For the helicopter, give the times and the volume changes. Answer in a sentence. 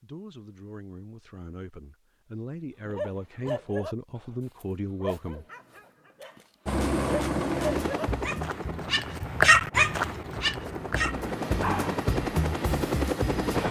You can hear the helicopter from 6.7 to 13.6 s, getting quieter then louder.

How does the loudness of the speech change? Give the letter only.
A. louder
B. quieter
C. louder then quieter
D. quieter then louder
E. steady
A.